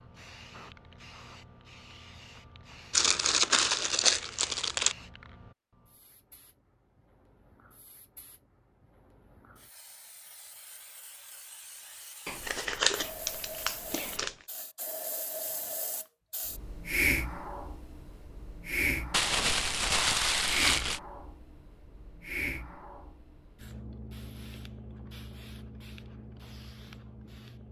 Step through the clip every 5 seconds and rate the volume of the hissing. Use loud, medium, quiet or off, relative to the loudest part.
quiet, quiet, quiet, loud, medium, quiet.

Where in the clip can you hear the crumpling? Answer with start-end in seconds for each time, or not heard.
2.9-5.0, 12.2-14.3, 19.1-21.0.